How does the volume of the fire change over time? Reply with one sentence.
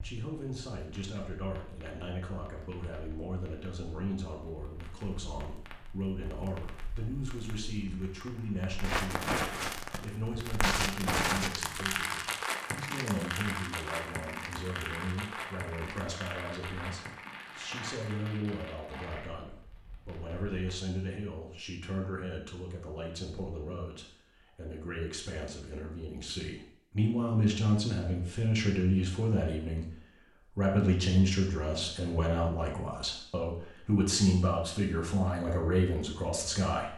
The volume of the fire goes up, then down.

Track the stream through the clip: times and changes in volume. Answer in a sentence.
You can't hear the stream here.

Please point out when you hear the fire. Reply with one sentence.
You can hear the fire from 0.0 to 20.6 s.